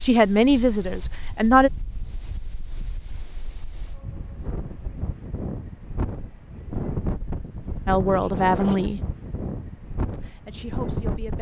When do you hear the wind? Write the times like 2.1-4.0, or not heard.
0.0-11.3.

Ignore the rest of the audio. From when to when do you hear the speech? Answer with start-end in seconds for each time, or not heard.
0.0-1.7, 7.8-9.0, 10.1-11.3.